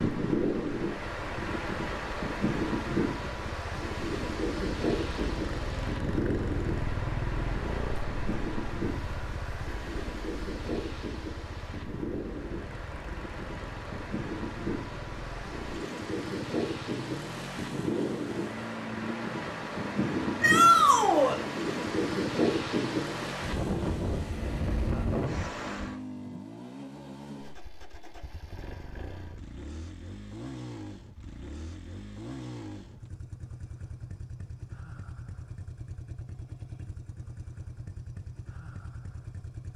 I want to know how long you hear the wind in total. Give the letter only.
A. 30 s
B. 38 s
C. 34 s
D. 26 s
D.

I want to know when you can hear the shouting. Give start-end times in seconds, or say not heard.
20.4-21.4.